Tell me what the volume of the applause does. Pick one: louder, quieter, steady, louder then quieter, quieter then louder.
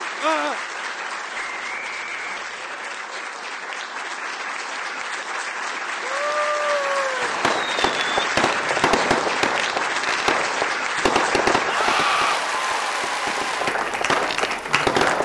louder.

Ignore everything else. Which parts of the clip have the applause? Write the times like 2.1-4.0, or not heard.
0.0-15.2.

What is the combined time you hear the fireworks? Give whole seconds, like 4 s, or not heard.
8 s.